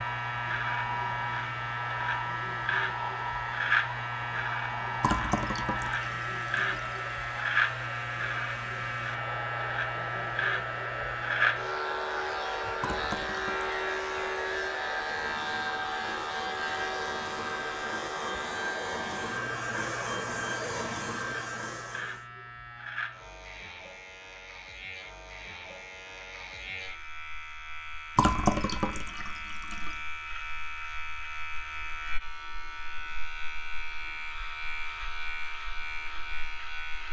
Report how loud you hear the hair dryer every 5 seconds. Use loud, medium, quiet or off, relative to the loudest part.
loud, loud, loud, loud, loud, off, off, off.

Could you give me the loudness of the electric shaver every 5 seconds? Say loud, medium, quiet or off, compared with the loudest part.
loud, loud, loud, loud, medium, medium, medium, medium.